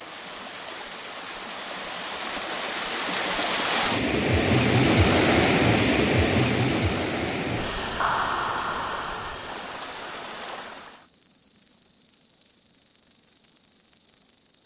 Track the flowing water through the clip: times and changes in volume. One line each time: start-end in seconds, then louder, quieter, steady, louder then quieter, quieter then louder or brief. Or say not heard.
0.0-11.1 louder then quieter.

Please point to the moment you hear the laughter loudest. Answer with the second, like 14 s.
8 s.